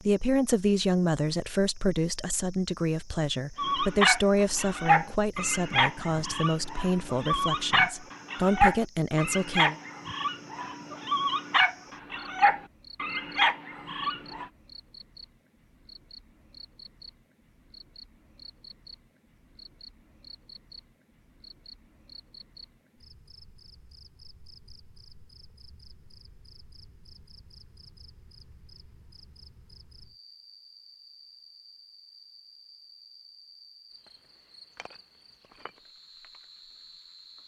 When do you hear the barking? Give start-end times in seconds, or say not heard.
3.5-14.4.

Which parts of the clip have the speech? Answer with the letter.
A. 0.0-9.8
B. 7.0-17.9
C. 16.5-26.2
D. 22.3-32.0
A.